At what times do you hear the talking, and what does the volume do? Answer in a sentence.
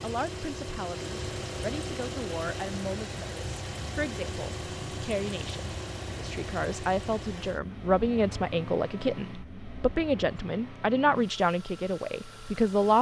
You can hear the talking from 0.0 to 12.9 s, getting louder.